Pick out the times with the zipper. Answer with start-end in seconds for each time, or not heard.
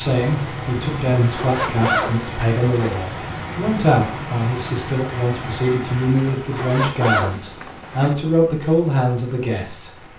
1.2-3.0, 6.2-8.2.